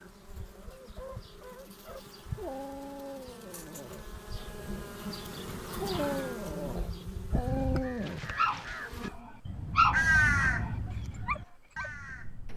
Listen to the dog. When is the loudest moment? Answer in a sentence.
The volume of the dog peaks at 10 seconds.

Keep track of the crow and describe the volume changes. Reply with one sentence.
The volume of the crow goes up, then down.